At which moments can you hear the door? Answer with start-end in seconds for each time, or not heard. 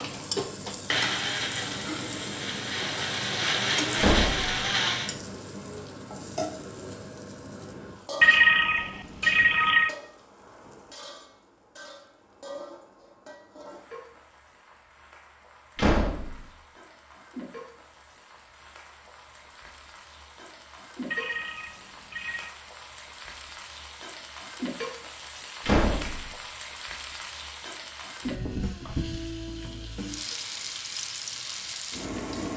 4.0-4.5, 15.8-16.5, 25.6-26.4.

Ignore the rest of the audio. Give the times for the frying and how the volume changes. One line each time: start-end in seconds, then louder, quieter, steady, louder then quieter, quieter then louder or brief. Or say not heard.
0.0-32.5 quieter then louder.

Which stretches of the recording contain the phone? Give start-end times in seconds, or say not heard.
8.2-9.9, 21.1-22.6.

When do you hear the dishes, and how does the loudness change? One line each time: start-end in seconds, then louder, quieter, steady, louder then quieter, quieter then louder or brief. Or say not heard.
not heard.